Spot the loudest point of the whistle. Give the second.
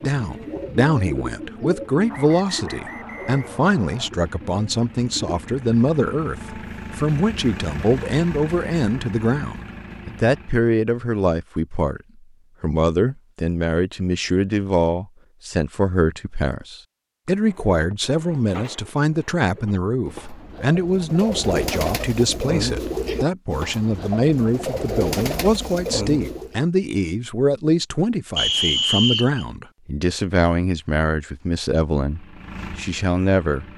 29 s.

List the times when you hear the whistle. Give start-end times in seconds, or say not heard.
2.1-4.1, 17.2-17.9, 28.4-29.4.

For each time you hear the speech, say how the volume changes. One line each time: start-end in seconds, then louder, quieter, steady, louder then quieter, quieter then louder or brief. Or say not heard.
0.0-12.0 steady
12.6-33.6 steady.